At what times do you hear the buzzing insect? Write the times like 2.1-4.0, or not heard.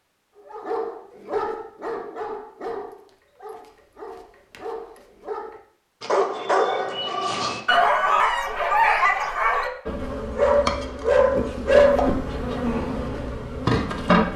9.8-14.3.